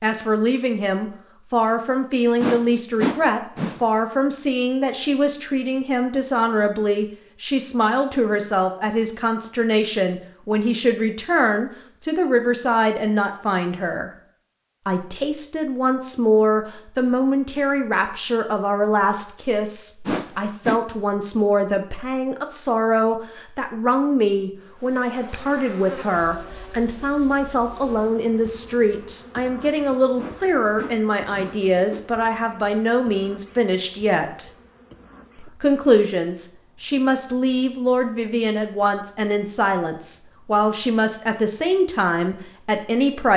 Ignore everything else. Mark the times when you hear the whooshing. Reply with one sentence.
You can hear the whooshing from 2.4 to 3.9 s, from 20.1 to 20.8 s and from 30.1 to 32.0 s.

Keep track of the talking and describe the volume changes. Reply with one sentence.
The volume of the talking stays about the same.